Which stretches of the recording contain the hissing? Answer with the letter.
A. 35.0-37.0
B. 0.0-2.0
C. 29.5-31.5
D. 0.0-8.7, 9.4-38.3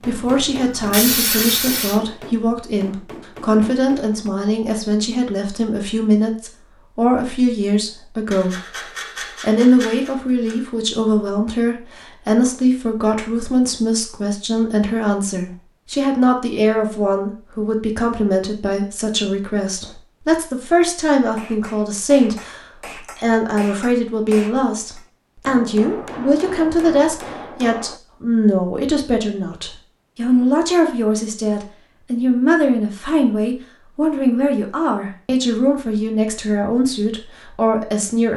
B.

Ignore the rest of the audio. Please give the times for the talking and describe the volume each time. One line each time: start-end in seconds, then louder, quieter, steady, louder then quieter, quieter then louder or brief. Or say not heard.
0.0-8.7 steady
9.4-38.3 steady.